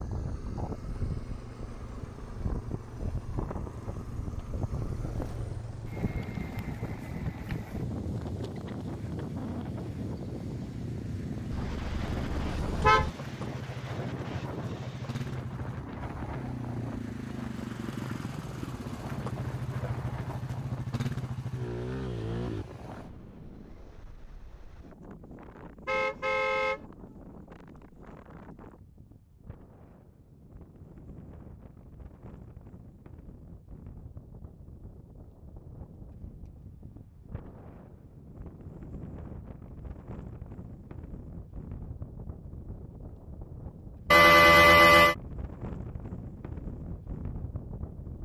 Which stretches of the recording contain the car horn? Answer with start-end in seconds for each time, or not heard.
11.5-13.1, 25.9-26.8, 44.1-45.1.